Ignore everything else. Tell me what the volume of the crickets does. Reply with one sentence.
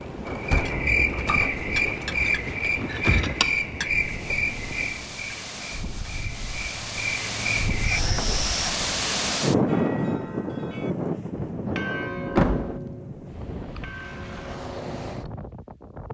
The volume of the crickets goes down, then up.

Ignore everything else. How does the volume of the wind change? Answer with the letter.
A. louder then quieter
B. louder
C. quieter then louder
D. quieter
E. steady
A.